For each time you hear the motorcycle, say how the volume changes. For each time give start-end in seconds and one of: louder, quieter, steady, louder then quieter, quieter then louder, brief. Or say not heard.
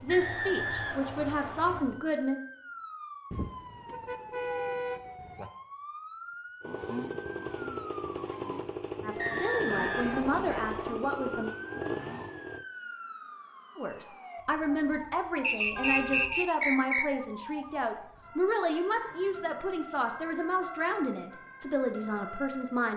6.6-12.7 steady.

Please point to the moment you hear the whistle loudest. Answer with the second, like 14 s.
16 s.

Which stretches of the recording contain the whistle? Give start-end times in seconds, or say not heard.
0.1-1.8, 9.2-10.9, 15.4-17.1.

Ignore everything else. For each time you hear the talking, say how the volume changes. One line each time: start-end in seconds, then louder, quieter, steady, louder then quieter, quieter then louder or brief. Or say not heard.
0.0-2.4 brief
9.0-11.5 brief
13.8-22.9 steady.